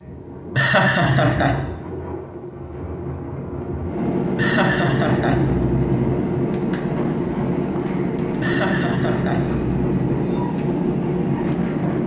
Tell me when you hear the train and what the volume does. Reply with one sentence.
You can hear the train from 0.0 to 12.0 s, getting louder.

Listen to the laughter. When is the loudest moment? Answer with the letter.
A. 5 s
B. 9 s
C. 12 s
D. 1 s
D.